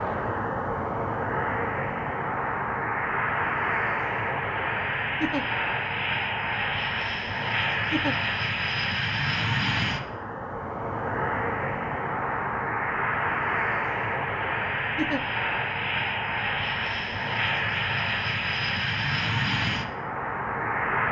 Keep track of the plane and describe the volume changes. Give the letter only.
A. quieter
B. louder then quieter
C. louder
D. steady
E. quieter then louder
D.